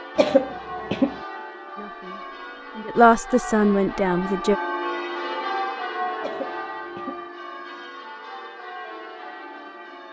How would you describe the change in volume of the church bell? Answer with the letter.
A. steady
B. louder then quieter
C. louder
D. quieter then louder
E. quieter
B.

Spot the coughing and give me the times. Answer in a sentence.
The coughing can be heard from 0.1 to 1.1 s and from 6.2 to 7.2 s.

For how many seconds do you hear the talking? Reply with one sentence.
The talking can be heard for 3 seconds in total.